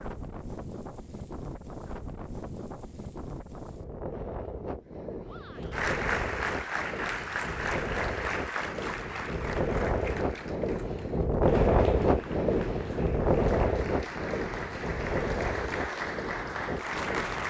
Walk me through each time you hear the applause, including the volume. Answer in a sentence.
You can hear the applause from 5.6 to 17.4 s, getting quieter then louder.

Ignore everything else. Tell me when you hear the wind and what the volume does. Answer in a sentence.
You can hear the wind from 0.0 to 17.4 s, getting louder then quieter.